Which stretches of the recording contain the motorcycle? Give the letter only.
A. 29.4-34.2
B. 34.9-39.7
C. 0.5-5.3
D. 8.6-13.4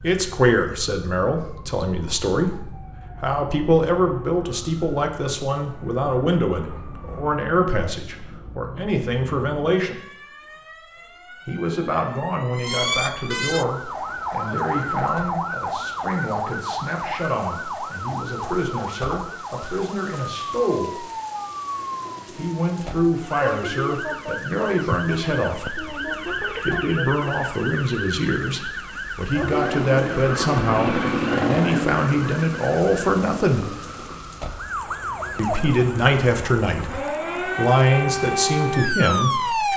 A.